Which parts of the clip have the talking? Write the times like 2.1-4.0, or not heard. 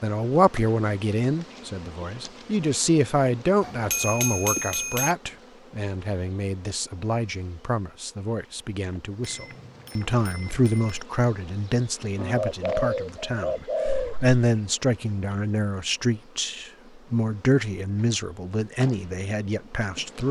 0.0-20.2.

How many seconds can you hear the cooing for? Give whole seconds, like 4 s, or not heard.
2 s.